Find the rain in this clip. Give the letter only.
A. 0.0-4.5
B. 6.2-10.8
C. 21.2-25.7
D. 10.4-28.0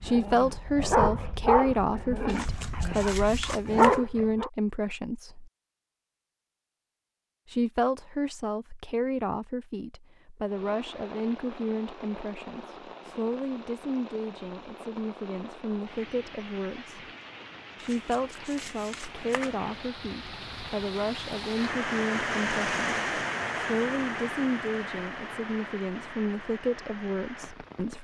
D.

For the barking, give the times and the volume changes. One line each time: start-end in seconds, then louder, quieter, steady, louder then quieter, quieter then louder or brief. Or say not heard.
0.0-4.5 quieter then louder.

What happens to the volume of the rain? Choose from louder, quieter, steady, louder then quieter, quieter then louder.
louder then quieter.